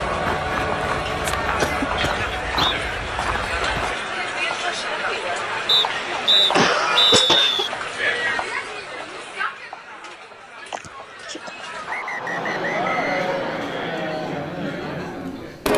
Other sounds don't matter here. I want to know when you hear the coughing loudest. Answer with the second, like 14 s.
7 s.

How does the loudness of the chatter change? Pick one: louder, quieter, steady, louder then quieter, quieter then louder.
quieter then louder.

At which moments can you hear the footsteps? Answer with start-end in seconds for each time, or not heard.
0.0-4.0.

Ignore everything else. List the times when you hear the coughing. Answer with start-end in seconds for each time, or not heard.
0.5-2.1, 6.5-7.7, 10.7-11.5.